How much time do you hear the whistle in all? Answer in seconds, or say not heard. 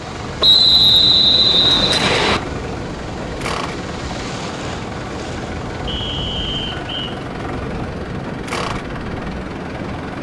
3 s.